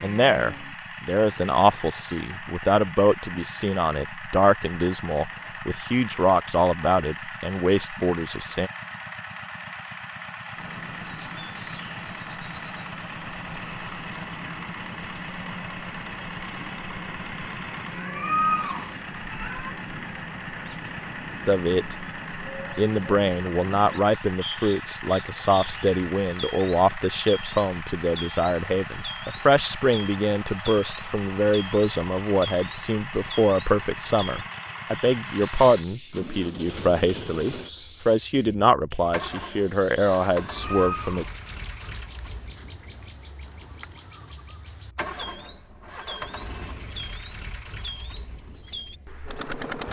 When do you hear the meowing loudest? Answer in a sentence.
The loudest moment of the meowing is at 18 seconds.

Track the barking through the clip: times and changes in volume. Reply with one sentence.
The barking can't be heard in this clip.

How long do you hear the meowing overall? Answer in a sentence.
The meowing can be heard for 3 seconds in total.